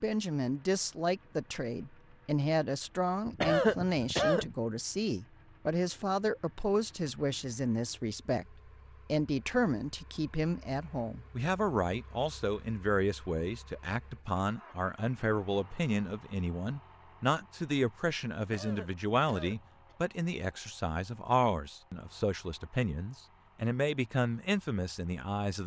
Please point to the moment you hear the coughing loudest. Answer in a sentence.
The loudest moment of the coughing is at 4 seconds.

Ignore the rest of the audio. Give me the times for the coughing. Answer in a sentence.
The coughing can be heard from 3.2 to 4.5 s and from 18.4 to 19.9 s.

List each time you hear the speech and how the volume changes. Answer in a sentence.
The speech can be heard from 0.0 to 25.6 s, at a steady volume.